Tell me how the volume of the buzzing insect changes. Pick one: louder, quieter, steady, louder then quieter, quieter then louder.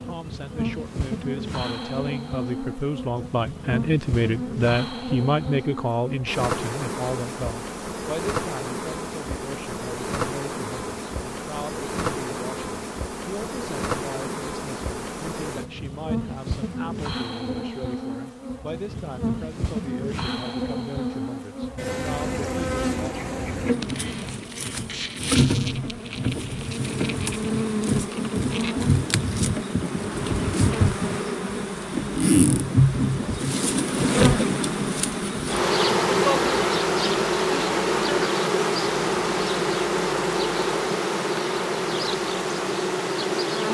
louder.